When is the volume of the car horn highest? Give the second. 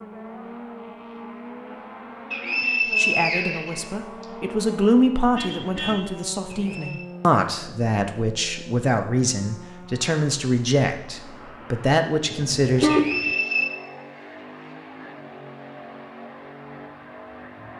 13 s.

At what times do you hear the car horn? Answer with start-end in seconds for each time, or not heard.
5.3-6.0, 12.3-13.3.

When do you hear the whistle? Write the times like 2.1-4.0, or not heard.
2.3-4.2, 6.5-7.1, 12.8-13.8.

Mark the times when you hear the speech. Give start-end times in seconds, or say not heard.
3.0-12.9.